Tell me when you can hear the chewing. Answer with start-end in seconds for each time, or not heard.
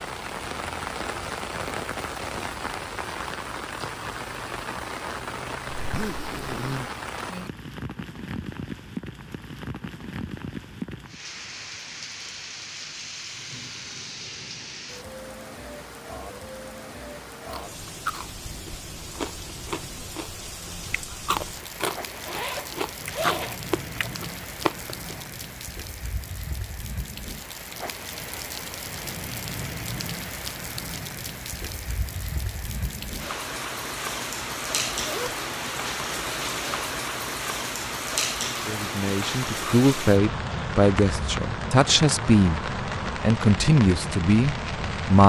17.4-25.2.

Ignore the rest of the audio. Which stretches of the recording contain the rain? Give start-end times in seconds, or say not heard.
0.0-45.2.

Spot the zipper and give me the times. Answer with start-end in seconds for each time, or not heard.
5.8-6.9, 22.1-24.1, 34.8-35.4.